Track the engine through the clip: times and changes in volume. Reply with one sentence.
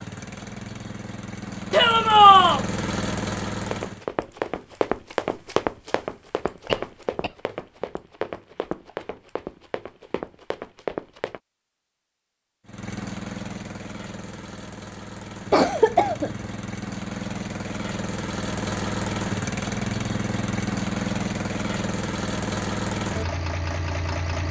The engine can be heard from 0.0 to 4.0 s, getting louder; and from 12.7 to 24.4 s, getting louder.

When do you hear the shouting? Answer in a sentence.
The shouting can be heard from 1.7 to 2.6 s.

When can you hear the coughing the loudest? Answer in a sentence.
The volume of the coughing peaks at 16 seconds.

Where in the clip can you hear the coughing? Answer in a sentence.
You can hear the coughing from 6.7 to 7.3 s and from 15.5 to 16.4 s.